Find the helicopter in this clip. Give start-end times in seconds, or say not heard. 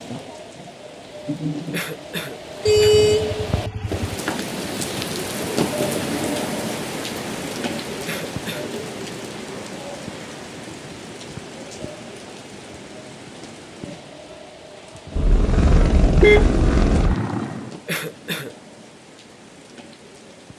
15.1-17.8.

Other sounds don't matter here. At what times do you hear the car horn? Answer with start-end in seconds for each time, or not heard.
2.6-4.2, 15.2-17.1.